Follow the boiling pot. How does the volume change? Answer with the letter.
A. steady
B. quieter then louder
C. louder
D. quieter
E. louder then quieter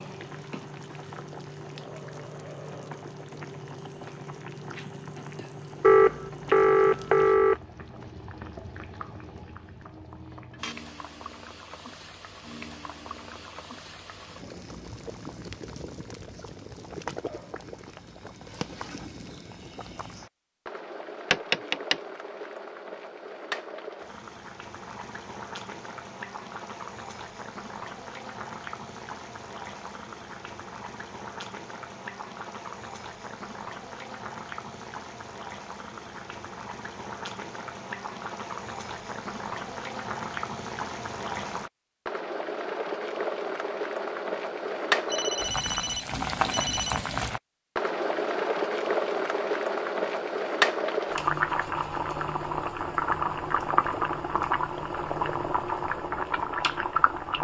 C.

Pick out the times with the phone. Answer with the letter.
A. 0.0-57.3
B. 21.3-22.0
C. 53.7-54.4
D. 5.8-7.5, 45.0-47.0
D.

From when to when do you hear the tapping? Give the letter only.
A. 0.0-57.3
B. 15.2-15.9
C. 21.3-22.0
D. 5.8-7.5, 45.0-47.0
C.